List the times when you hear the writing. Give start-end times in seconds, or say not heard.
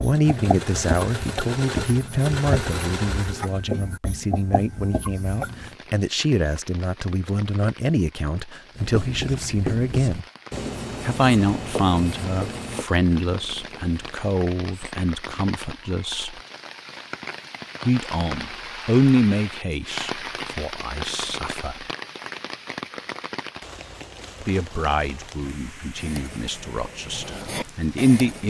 0.0-5.7, 8.8-14.9, 25.9-28.4.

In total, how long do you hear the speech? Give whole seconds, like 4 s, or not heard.
24 s.